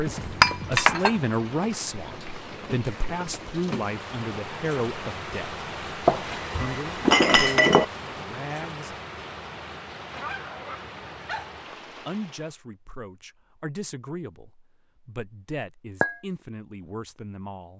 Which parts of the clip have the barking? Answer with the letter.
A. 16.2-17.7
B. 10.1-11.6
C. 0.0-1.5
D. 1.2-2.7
B.